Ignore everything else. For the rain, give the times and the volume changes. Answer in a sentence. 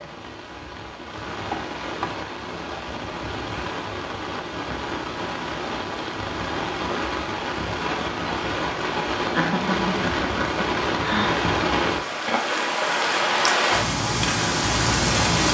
The rain can be heard from 0.0 to 15.5 s, getting louder.